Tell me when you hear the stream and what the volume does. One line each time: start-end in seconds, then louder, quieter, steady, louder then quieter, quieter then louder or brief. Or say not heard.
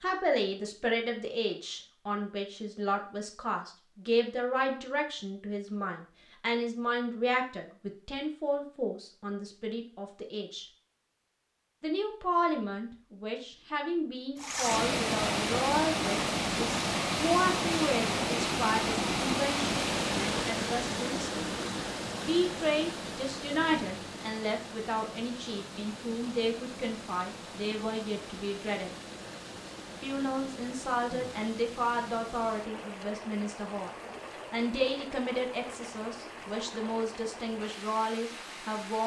14.3-39.0 quieter.